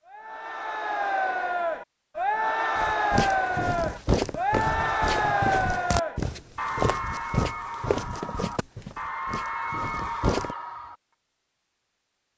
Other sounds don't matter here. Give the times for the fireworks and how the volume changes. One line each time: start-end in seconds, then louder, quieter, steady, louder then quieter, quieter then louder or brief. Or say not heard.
not heard.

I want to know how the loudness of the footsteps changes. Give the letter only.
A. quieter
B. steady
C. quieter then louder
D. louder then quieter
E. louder
A.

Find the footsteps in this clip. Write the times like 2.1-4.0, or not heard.
2.8-10.6.